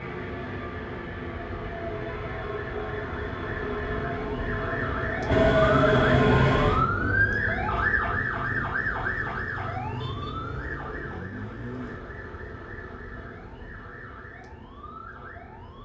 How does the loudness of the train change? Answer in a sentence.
The loudness of the train goes up.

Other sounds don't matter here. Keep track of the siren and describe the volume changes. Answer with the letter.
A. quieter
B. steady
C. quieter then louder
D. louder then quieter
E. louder
D.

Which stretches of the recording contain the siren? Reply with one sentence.
The siren can be heard from 0.0 to 15.8 s.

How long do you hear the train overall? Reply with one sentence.
The train can be heard for 7 seconds in total.